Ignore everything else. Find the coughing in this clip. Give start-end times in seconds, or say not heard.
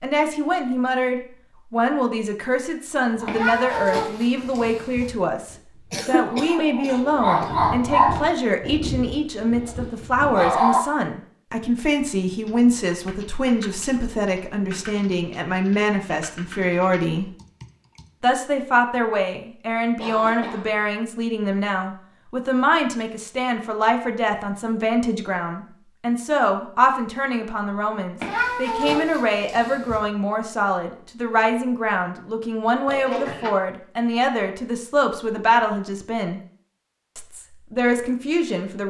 5.9-7.5, 19.9-20.8, 32.9-33.5.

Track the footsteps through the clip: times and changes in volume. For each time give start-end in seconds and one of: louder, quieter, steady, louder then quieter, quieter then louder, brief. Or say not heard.
not heard.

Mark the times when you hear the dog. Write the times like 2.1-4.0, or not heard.
3.1-10.8.